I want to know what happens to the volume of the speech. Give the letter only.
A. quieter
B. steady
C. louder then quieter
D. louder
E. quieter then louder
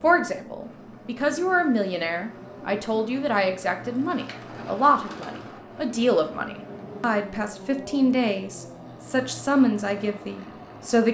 B.